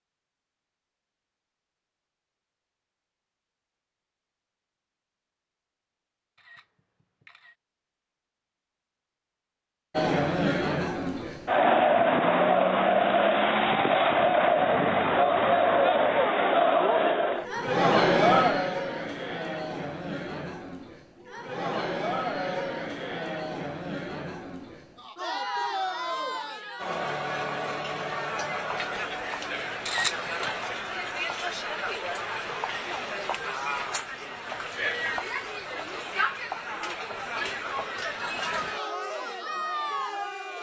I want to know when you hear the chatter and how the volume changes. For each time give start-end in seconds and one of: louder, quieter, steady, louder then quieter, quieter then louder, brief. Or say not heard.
9.9-40.5 quieter.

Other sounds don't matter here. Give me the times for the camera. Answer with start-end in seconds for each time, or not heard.
6.3-7.5, 29.9-30.5.